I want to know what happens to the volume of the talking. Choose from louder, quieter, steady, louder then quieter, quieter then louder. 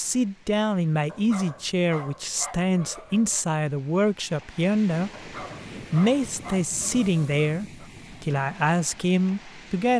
steady.